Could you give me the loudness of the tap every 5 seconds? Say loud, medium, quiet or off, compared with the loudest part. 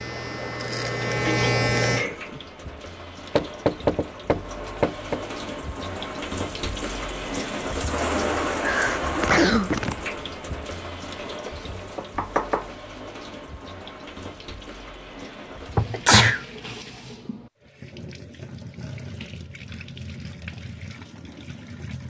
medium, loud, medium, medium, medium.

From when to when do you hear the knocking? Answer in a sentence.
You can hear the knocking from 3.4 to 5.2 s, from 11.4 to 12.7 s and from 15.8 to 16.4 s.